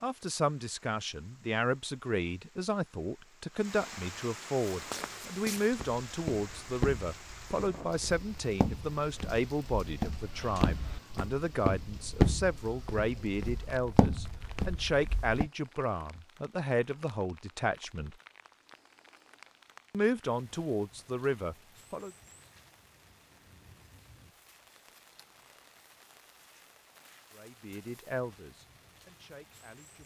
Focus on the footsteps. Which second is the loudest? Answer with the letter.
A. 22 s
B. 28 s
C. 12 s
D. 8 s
C.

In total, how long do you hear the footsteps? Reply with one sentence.
The footsteps can be heard for 11 seconds in total.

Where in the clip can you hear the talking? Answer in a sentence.
You can hear the talking from 0.0 to 18.1 s, from 19.9 to 22.1 s and from 27.3 to 30.0 s.